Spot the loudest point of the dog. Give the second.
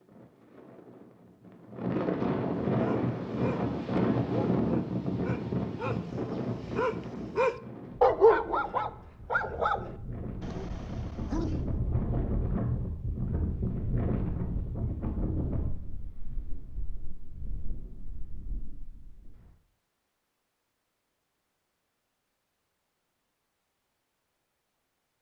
8 s.